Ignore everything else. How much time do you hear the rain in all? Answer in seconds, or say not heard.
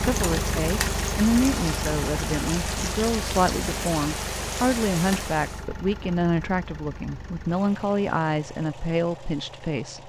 6 s.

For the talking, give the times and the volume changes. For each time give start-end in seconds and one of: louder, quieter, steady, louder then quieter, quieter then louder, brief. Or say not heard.
0.0-10.0 steady.